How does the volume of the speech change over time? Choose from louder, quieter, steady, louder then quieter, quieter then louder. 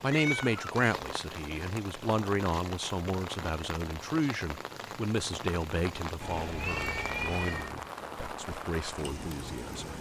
quieter.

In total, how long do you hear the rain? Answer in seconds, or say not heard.
10 s.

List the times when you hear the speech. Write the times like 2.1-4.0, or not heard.
0.0-9.9.